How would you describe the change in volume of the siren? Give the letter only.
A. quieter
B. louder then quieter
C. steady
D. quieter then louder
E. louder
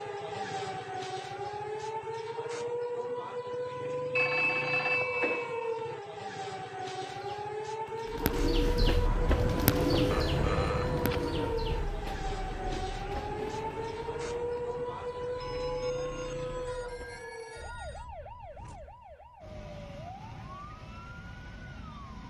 A.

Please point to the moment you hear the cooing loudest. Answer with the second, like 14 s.
10 s.